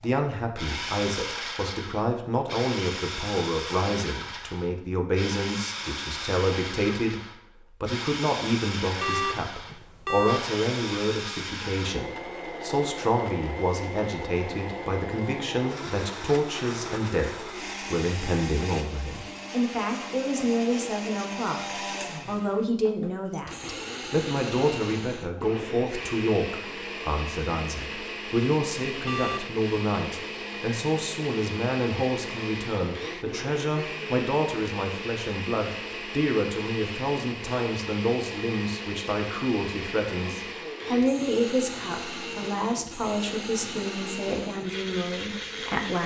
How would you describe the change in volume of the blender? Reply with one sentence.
The loudness of the blender stays about the same.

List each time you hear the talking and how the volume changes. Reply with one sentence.
You can hear the talking from 0.0 to 46.0 s, at a steady volume.